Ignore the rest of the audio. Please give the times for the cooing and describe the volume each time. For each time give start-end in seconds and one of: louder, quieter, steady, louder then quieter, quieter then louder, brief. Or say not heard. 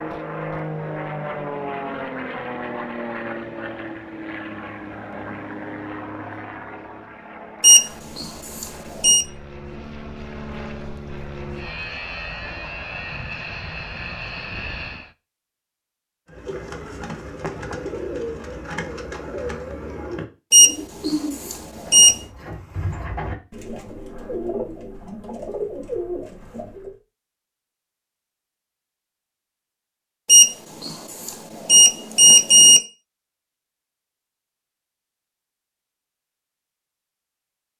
16.2-26.9 steady.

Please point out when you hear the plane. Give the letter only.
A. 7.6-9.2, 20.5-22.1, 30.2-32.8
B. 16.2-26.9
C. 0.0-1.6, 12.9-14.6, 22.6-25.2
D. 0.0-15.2
D.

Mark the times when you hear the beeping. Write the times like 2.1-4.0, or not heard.
7.6-9.2, 20.5-22.1, 30.2-32.8.